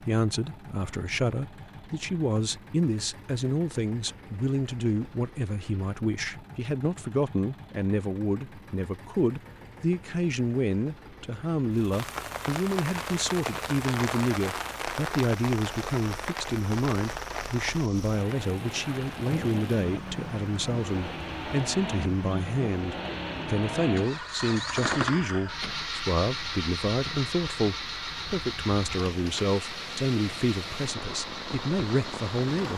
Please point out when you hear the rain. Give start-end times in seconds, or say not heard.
11.9-32.7.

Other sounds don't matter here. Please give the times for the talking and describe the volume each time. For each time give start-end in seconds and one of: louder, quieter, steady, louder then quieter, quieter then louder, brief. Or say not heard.
0.0-32.7 steady.